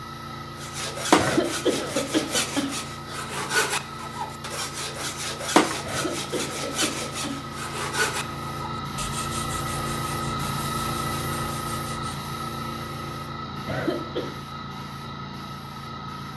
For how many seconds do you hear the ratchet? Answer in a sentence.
The ratchet can't be heard in this clip.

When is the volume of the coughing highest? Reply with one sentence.
The loudest moment of the coughing is at 2 seconds.